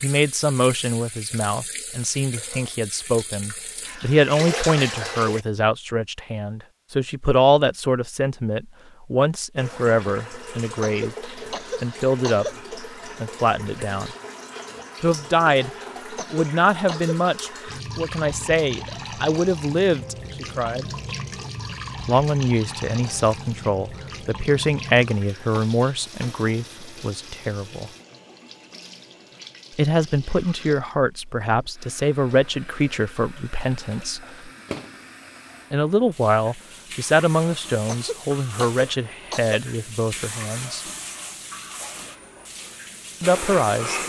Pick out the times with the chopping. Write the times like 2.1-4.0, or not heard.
not heard.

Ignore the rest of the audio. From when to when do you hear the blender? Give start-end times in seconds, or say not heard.
42.5-44.0.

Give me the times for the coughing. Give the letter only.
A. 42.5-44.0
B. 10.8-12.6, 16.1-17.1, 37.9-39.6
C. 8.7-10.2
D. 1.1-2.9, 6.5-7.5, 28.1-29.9
B.